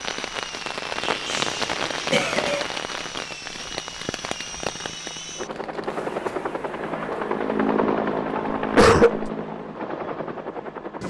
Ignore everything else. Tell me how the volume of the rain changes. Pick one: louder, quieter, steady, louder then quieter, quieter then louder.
quieter.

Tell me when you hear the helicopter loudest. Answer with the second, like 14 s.
8 s.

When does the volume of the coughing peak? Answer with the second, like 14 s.
9 s.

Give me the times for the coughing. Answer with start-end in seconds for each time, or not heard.
1.0-2.6, 8.8-9.3.